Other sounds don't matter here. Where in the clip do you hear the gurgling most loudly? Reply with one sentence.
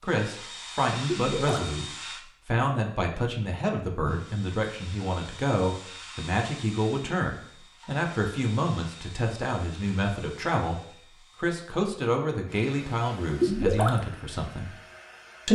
The loudest moment of the gurgling is at 14 seconds.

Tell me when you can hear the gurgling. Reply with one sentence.
The gurgling can be heard from 1.1 to 1.7 s and from 13.4 to 14.0 s.